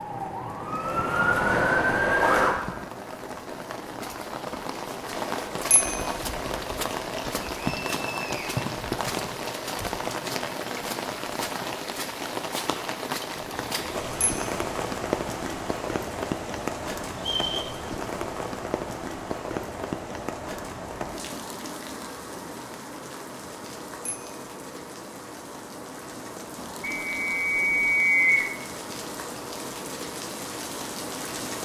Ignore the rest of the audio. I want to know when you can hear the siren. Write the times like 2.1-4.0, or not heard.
0.0-2.5.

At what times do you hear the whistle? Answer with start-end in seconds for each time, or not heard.
7.7-8.6, 17.1-17.8, 26.8-28.5.